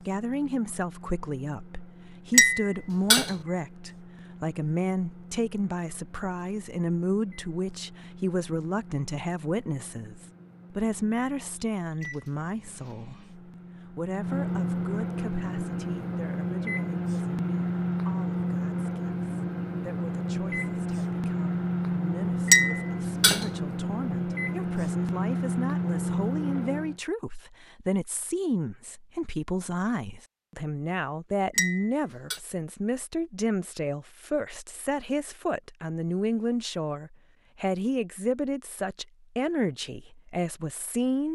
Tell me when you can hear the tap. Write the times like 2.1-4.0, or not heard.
not heard.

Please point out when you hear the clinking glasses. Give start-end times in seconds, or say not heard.
2.3-3.3, 22.4-23.4, 31.6-32.4.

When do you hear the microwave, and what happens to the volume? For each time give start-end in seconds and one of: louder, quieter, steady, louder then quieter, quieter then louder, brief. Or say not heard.
0.0-27.0 louder.